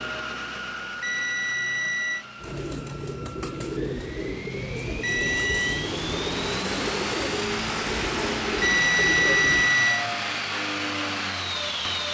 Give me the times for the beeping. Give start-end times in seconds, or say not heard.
1.0-2.2, 5.0-5.9, 8.6-10.1.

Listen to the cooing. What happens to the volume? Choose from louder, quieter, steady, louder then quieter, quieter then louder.
steady.